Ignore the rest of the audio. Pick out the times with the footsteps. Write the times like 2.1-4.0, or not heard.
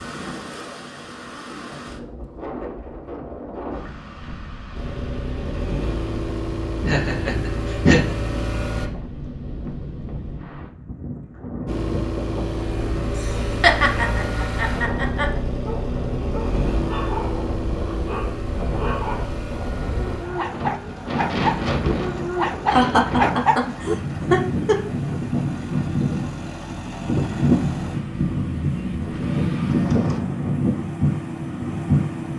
not heard.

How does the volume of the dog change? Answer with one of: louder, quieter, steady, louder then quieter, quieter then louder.
louder.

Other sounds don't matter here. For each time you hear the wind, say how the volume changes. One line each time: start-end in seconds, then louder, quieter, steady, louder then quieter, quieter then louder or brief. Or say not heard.
0.0-32.3 louder.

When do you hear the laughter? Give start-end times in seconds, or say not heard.
6.8-8.2, 13.2-15.3, 22.6-24.8.